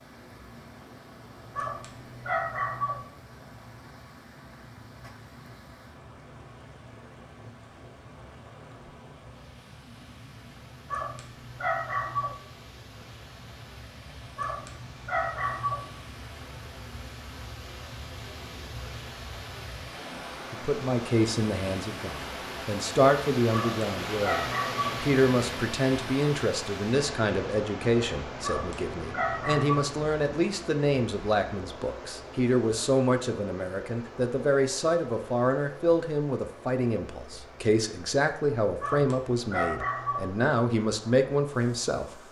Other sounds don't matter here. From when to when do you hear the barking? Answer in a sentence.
You can hear the barking from 1.6 to 3.0 s, from 10.8 to 12.4 s, from 14.3 to 15.8 s, from 23.5 to 25.0 s, from 28.4 to 29.9 s and from 38.8 to 40.3 s.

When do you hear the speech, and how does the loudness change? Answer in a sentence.
The speech can be heard from 20.5 to 42.2 s, at a steady volume.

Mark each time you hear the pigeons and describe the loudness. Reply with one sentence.
The pigeons can't be heard in this clip.